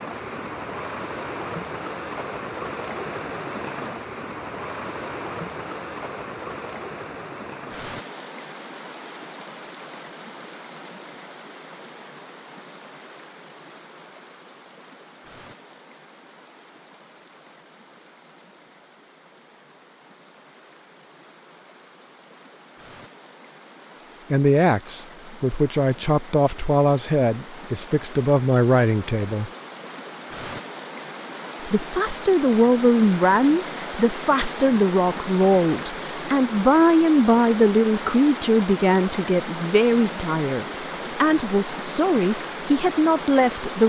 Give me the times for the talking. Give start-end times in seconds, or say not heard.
24.3-29.5, 31.6-43.8.